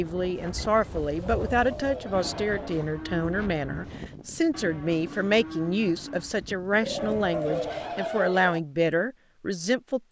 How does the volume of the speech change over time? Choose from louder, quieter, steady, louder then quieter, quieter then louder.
steady.